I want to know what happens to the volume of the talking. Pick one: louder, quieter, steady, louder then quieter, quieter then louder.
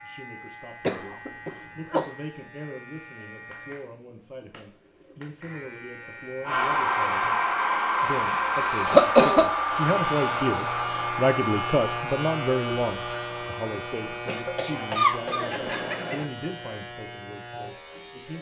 louder then quieter.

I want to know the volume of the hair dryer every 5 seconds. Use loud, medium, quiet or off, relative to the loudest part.
off, loud, medium, off.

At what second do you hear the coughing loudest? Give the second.
9 s.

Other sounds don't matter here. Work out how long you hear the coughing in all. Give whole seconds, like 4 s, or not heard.
4 s.